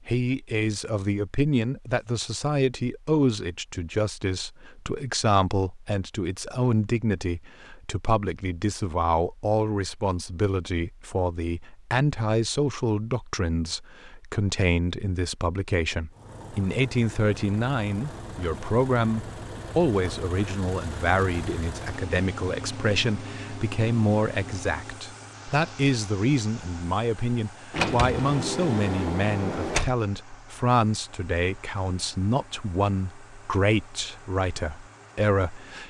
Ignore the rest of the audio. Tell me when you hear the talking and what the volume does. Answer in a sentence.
You can hear the talking from 0.1 to 35.8 s, at a steady volume.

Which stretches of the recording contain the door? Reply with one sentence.
The door can be heard from 27.7 to 29.9 s.